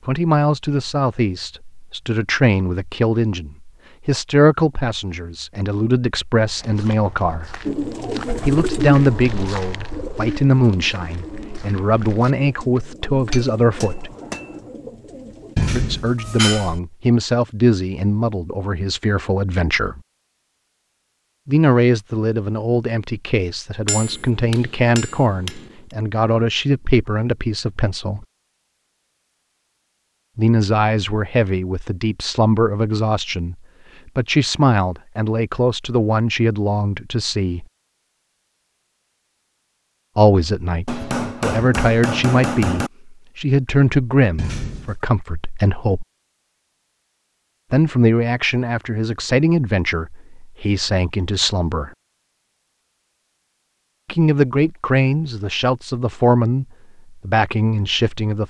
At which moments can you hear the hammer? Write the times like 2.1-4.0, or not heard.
13.2-14.7, 23.9-25.9, 40.9-42.9.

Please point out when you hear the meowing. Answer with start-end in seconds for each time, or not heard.
15.6-16.8, 44.4-45.0.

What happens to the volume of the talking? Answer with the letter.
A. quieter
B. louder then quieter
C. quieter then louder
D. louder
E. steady
E.